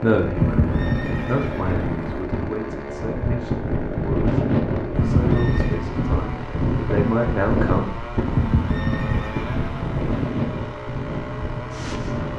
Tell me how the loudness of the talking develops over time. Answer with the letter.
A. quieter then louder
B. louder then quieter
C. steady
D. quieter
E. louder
A.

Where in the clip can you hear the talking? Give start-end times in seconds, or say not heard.
0.0-7.8.